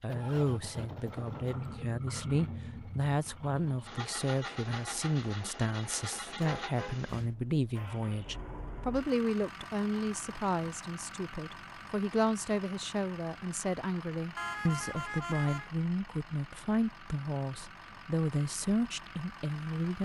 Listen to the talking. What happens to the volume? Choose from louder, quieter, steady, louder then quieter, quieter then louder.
steady.